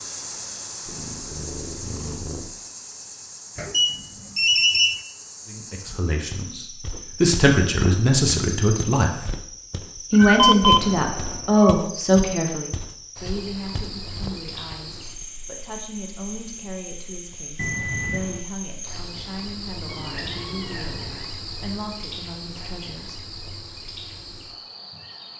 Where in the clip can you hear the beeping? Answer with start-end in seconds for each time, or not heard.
3.5-5.0, 10.3-10.8, 17.6-18.4.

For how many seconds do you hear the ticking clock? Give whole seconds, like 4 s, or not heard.
not heard.